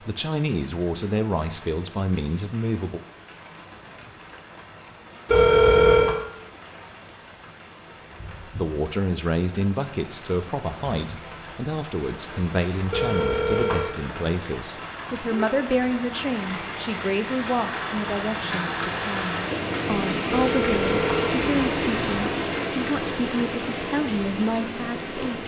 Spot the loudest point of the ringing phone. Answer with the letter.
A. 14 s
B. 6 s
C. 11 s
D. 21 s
B.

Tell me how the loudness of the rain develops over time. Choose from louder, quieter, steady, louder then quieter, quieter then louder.
louder.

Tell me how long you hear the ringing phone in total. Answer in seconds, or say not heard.
4 s.